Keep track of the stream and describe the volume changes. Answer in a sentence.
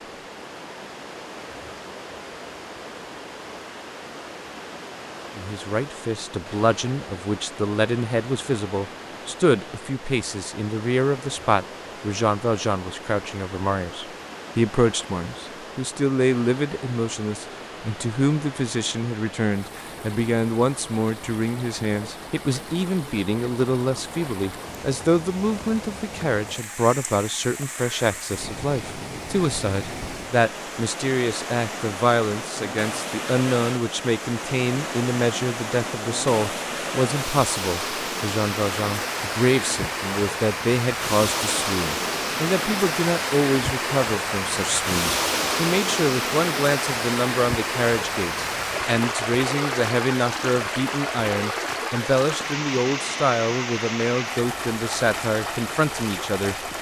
The loudness of the stream goes up.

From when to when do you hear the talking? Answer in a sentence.
You can hear the talking from 5.3 to 56.5 s.